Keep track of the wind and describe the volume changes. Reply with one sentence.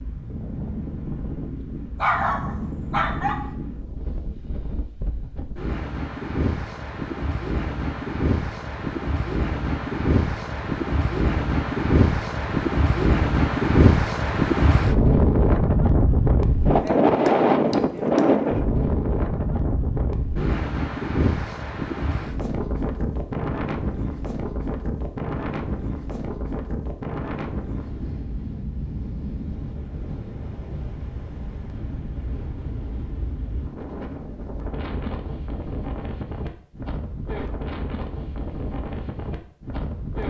The loudness of the wind goes up, then down.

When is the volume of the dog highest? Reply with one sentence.
The volume of the dog peaks at 2 seconds.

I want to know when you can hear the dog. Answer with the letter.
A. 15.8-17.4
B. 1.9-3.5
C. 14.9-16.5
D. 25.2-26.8
B.